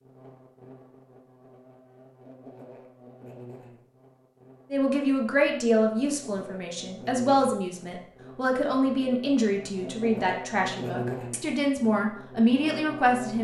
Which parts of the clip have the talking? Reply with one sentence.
You can hear the talking from 4.7 to 13.3 s.